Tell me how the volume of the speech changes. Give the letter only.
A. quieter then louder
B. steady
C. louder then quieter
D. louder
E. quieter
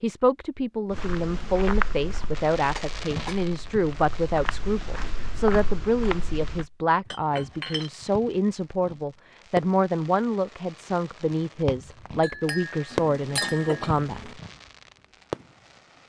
B.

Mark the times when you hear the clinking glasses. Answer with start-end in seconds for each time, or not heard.
2.7-3.4, 7.0-7.9, 12.2-13.7.